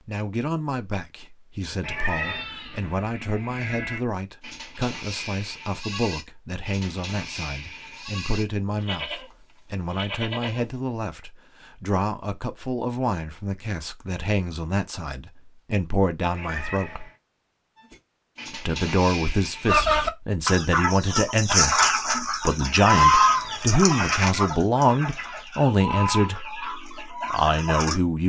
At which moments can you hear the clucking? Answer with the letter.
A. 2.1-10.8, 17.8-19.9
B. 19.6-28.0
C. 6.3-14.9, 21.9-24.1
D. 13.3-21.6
B.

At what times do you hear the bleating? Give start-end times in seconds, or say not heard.
2.1-10.8, 17.8-19.9.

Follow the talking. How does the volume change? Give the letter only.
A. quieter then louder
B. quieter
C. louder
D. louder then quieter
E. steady
C.